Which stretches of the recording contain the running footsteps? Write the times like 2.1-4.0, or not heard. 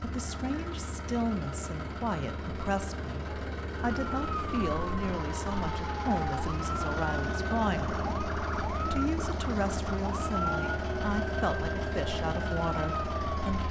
not heard.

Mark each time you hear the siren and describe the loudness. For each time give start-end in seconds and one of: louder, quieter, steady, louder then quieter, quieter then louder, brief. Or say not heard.
3.7-13.6 steady.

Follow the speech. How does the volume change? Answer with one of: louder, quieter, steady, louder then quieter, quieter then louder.
steady.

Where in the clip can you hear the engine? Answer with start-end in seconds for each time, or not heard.
0.0-13.6.